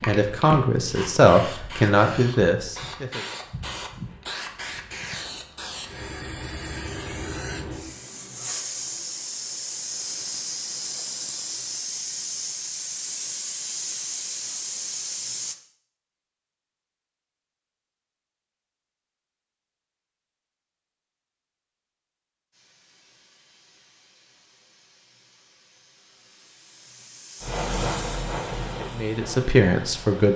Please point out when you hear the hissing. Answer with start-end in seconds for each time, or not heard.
0.0-15.6, 22.5-30.3.